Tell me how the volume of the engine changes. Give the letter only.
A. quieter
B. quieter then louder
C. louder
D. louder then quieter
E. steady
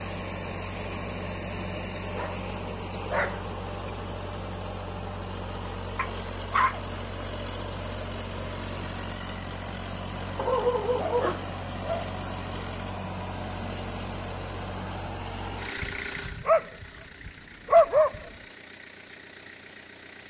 A.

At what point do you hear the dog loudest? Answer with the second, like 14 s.
18 s.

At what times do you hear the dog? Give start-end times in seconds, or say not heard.
2.1-3.4, 6.0-6.8, 10.3-12.2, 15.8-18.3.